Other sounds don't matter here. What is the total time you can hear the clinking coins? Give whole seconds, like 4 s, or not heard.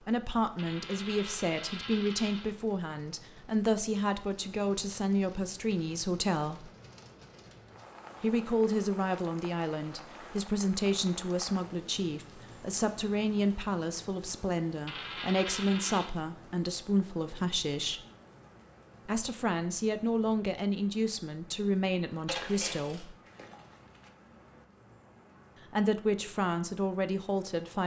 5 s.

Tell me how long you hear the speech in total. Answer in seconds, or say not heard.
23 s.